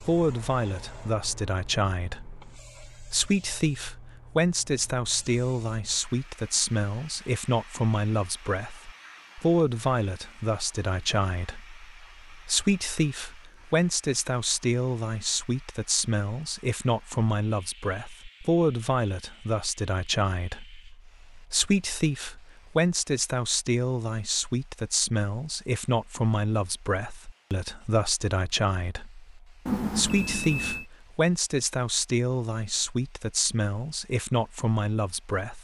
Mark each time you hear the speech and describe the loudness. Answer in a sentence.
The speech can be heard from 0.0 to 35.5 s, at a steady volume.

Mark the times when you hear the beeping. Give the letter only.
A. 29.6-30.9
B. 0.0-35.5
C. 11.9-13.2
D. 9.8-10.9
A.